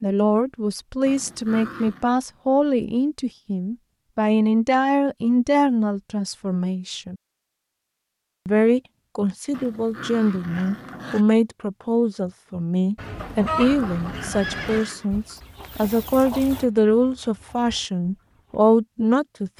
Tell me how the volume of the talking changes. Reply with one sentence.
The volume of the talking stays about the same.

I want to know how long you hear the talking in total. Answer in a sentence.
The talking can be heard for 18 seconds in total.